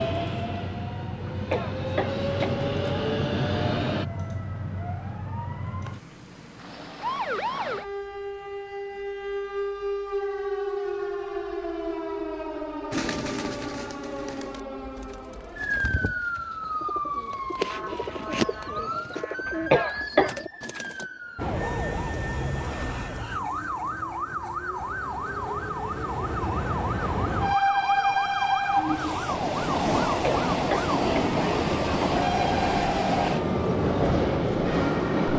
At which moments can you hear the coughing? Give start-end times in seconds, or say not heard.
1.2-2.5, 19.4-20.4, 30.2-31.3.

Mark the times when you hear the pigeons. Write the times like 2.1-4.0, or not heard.
12.9-21.1.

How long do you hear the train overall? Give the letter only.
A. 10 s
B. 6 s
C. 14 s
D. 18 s
D.